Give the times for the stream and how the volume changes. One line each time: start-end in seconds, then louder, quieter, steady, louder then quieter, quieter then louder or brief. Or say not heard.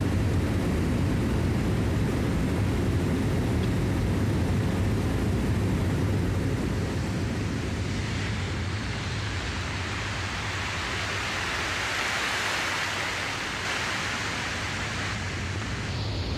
0.0-16.3 louder.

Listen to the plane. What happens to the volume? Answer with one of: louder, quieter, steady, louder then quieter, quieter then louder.
quieter.